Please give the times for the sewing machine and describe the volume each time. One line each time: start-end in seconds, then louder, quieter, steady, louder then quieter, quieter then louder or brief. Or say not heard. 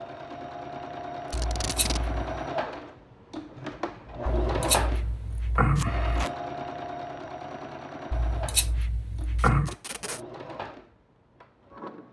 0.0-12.0 quieter.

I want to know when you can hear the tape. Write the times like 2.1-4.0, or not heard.
1.3-2.0, 5.8-6.3, 9.3-10.2.